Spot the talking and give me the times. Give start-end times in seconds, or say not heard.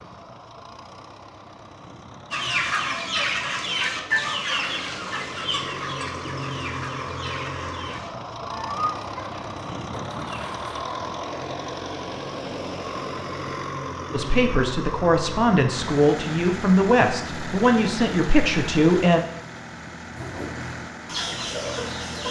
14.1-19.2.